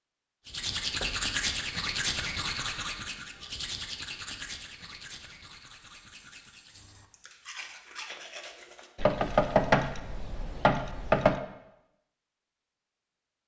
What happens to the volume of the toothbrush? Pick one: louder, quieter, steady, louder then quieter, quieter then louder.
quieter then louder.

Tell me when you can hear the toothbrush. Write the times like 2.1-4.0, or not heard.
0.5-8.9.